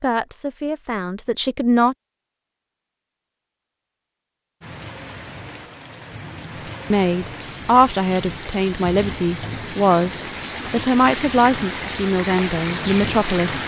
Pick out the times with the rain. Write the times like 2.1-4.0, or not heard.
4.6-13.6.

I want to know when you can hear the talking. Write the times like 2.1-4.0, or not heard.
0.0-1.9, 6.5-13.6.